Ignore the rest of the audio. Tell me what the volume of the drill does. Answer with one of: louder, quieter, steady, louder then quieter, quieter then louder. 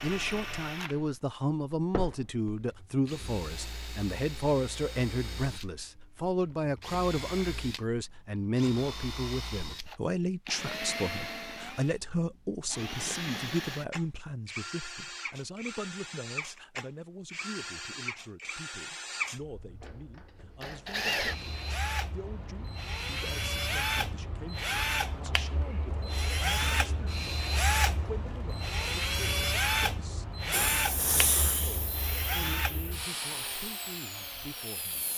louder.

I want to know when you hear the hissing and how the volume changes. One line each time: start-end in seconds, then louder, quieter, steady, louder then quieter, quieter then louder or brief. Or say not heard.
30.5-35.1 quieter.